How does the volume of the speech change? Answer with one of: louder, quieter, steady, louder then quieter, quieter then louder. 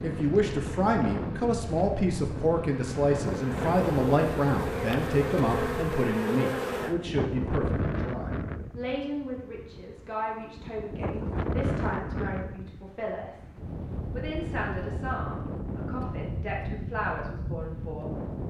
quieter.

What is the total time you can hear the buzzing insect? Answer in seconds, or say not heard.
7 s.